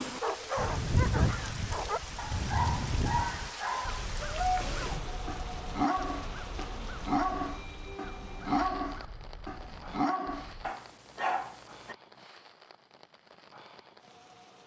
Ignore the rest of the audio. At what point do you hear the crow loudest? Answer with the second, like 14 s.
1 s.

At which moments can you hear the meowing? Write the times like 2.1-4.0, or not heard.
not heard.